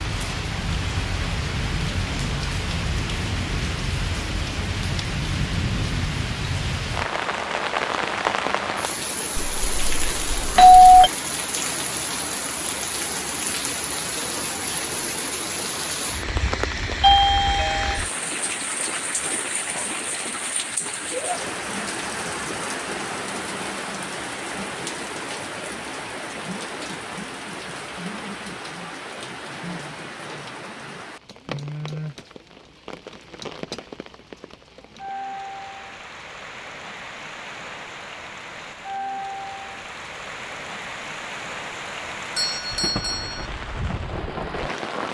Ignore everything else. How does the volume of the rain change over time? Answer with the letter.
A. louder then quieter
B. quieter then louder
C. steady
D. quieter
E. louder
D.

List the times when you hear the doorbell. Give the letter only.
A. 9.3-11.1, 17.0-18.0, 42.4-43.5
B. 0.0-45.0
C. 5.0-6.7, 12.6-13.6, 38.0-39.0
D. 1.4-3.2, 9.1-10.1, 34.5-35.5
A.